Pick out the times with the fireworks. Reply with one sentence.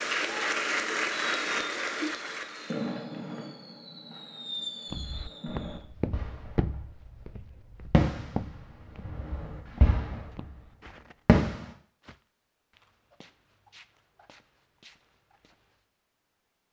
You can hear the fireworks from 1.1 to 6.8 s, from 7.9 to 10.4 s and from 11.2 to 11.7 s.